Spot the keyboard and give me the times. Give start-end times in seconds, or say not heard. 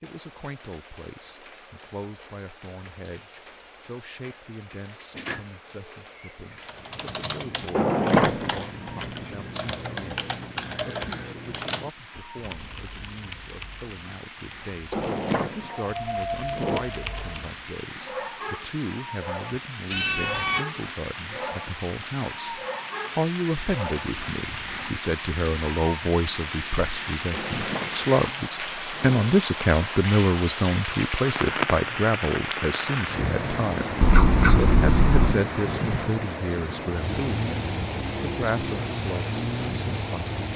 6.7-17.7.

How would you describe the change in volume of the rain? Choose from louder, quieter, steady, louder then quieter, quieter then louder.
louder.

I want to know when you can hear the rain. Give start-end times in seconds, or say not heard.
0.0-40.5.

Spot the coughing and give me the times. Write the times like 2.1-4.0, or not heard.
not heard.